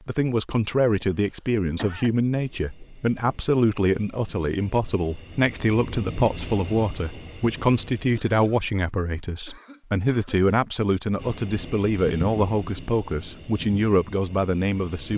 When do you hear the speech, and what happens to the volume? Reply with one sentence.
The speech can be heard from 0.1 to 15.1 s, at a steady volume.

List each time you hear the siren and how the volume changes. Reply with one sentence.
You can't hear the siren here.